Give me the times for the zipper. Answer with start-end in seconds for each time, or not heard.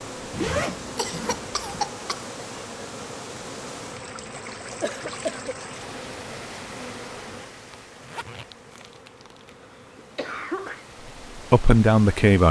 0.3-1.6, 7.7-8.6.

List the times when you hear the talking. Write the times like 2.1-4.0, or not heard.
11.3-12.4.